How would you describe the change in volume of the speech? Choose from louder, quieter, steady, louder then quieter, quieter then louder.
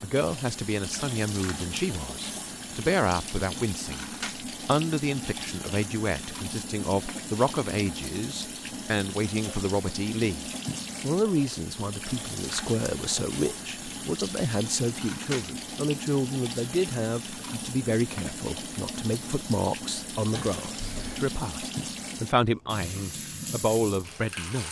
steady.